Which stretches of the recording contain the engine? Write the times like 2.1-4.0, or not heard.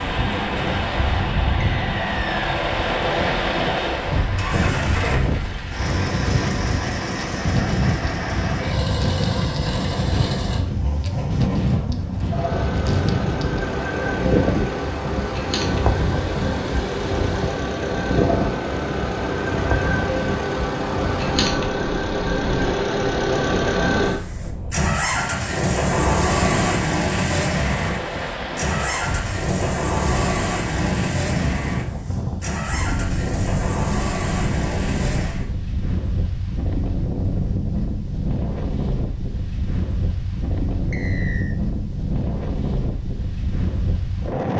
0.0-35.5.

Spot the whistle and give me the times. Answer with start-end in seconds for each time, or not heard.
1.6-2.4, 40.9-41.5.